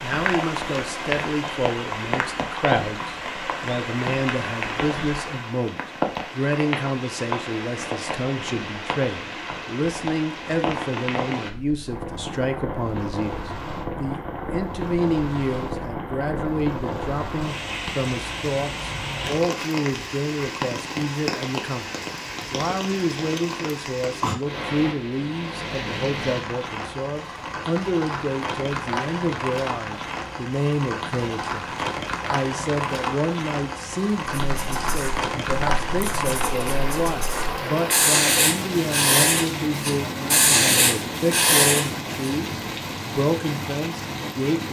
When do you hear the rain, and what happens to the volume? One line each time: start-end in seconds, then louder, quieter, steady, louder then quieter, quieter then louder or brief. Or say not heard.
0.0-44.6 steady.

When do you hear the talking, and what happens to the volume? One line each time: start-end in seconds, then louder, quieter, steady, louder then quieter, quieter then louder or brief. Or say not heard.
0.0-44.6 steady.